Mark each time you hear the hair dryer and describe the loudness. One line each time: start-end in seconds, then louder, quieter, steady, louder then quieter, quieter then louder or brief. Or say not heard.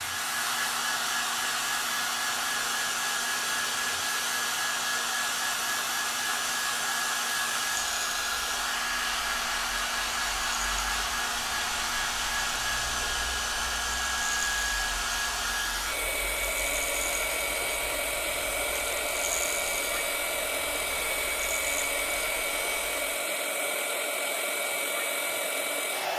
0.0-26.1 steady.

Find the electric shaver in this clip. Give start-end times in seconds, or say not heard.
0.0-23.1.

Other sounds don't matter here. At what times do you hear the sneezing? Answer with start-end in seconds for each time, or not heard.
not heard.